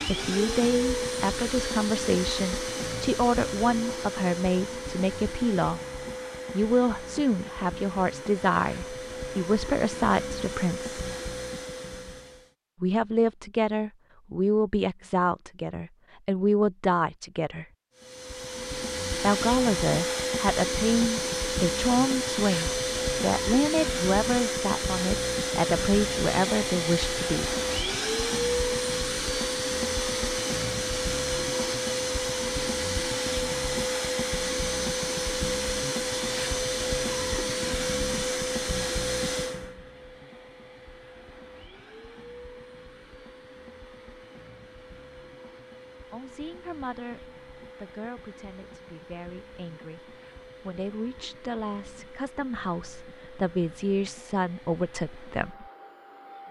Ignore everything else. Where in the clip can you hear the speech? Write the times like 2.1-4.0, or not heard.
0.1-5.8, 6.5-10.9, 12.8-17.6, 19.2-27.4, 46.1-55.6.